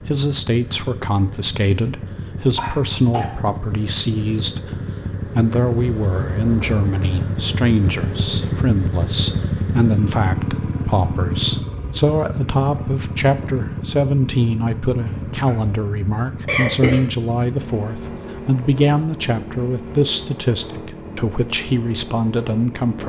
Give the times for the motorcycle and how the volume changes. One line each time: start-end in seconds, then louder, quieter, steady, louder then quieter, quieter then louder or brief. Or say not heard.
0.0-23.0 louder then quieter.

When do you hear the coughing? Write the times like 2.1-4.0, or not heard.
2.5-3.3, 15.0-17.1.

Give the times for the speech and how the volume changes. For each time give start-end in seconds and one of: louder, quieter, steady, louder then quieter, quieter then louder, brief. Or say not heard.
0.0-23.0 steady.